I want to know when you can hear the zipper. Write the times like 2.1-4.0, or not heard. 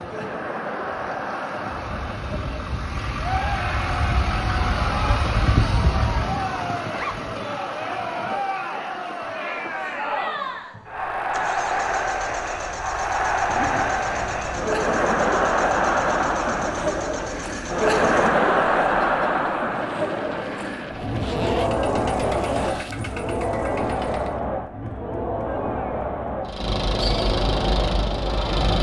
6.8-7.2, 13.4-14.7, 20.9-22.9.